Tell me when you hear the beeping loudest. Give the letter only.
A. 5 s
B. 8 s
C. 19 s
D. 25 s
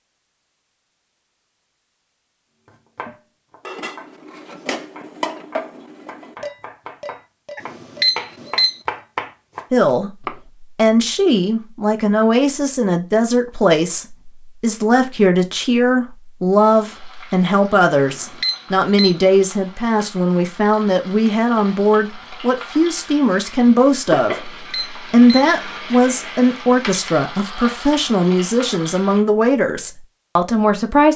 B.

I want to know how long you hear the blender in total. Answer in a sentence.
You can't hear the blender here.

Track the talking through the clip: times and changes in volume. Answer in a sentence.
The talking can be heard from 9.7 to 31.1 s, at a steady volume.